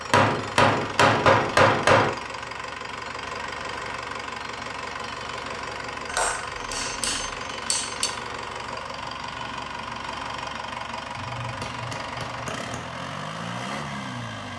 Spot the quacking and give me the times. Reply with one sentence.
The quacking can't be heard in this clip.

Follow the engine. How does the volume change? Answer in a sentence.
The loudness of the engine stays about the same.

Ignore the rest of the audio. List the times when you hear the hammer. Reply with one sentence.
The hammer can be heard from 0.1 to 2.1 s, from 6.0 to 8.1 s and from 11.2 to 12.9 s.